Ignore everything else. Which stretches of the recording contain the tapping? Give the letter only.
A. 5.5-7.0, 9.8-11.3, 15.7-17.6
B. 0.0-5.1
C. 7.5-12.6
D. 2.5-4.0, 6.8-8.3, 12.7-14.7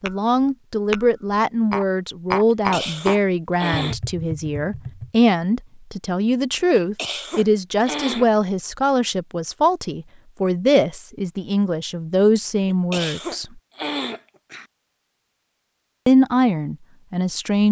B.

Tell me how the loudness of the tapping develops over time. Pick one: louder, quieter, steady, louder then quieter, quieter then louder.
louder then quieter.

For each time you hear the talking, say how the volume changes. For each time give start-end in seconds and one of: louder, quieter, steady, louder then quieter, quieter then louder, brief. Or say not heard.
0.0-13.4 steady
16.1-17.6 brief.